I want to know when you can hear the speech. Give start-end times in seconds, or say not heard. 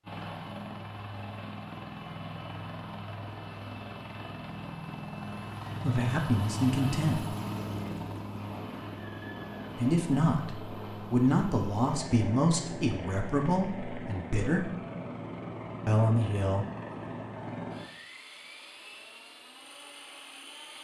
5.8-7.3, 9.8-14.8, 15.8-16.6.